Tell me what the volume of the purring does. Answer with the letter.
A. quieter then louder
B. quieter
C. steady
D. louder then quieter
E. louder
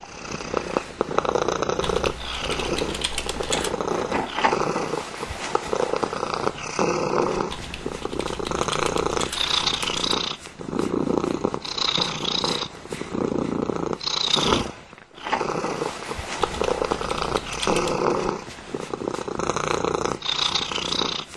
C.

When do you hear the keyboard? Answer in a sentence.
You can hear the keyboard from 1.8 to 3.7 s, from 7.5 to 10.1 s and from 16.4 to 18.1 s.